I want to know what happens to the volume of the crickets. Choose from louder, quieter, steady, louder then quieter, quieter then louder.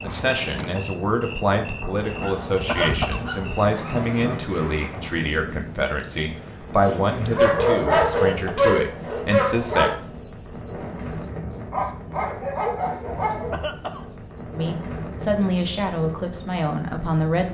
louder then quieter.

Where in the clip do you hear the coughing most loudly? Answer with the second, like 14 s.
3 s.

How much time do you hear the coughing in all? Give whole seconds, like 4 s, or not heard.
2 s.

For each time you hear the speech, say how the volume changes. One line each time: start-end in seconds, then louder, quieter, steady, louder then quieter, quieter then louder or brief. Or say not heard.
0.0-9.9 steady
14.5-17.4 brief.